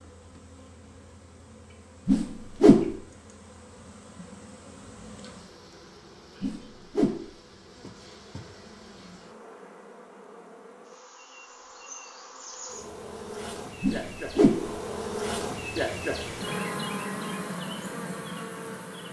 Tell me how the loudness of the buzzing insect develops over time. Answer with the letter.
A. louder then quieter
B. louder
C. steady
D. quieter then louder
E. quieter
B.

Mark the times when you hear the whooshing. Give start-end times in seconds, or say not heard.
2.0-3.0, 6.4-7.3, 13.8-14.7.